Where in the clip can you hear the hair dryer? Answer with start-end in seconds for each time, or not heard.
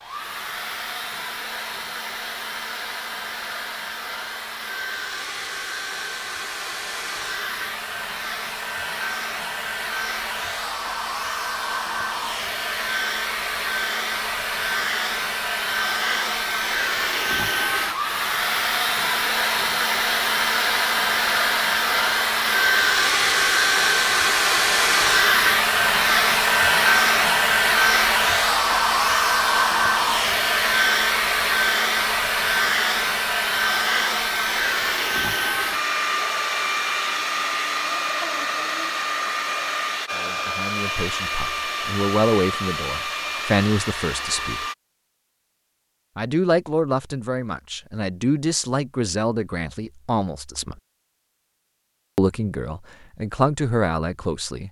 0.0-44.8.